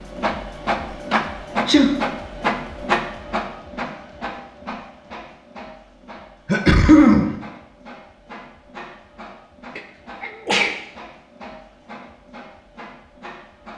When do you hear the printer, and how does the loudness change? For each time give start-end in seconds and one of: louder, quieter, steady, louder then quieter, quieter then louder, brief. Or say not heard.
0.0-13.7 quieter.